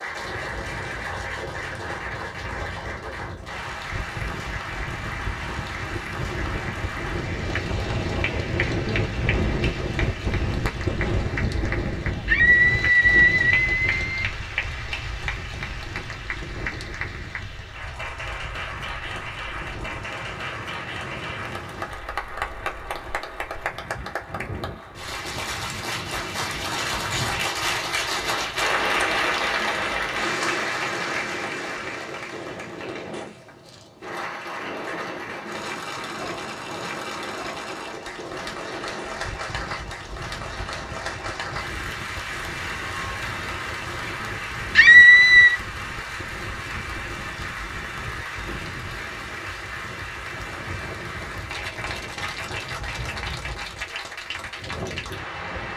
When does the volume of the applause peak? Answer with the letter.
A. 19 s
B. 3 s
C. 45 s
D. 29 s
D.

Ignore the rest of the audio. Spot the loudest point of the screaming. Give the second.
45 s.